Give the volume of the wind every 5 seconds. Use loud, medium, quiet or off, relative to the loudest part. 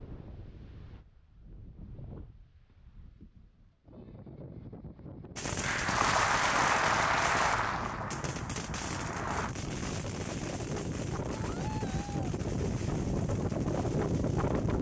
quiet, medium, loud.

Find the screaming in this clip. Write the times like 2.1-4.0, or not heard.
11.3-12.3.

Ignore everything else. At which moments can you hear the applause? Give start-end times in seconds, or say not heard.
5.6-9.6.